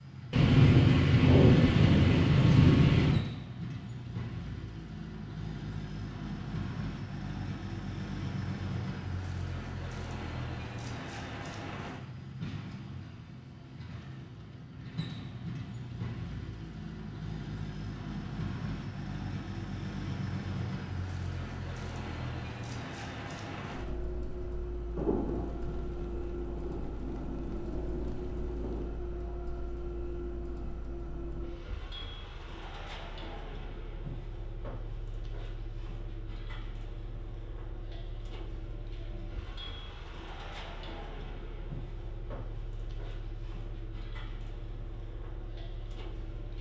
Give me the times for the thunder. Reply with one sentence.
The thunder can be heard from 0.3 to 3.2 s and from 24.9 to 28.9 s.